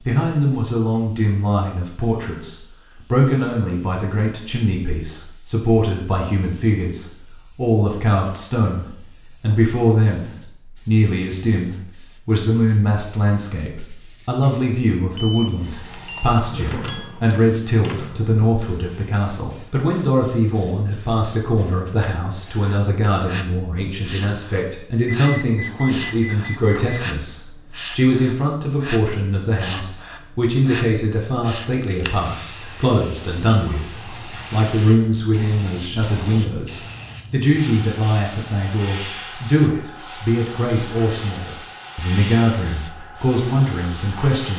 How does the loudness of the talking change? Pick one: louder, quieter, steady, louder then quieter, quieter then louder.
steady.